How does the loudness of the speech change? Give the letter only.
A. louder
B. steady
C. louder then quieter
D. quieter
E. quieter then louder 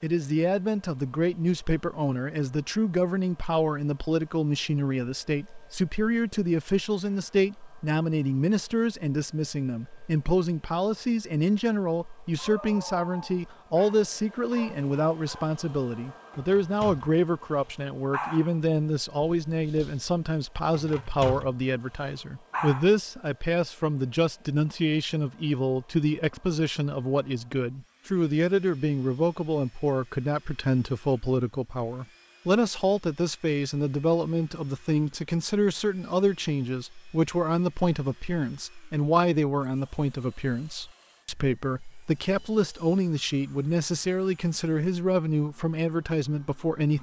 B.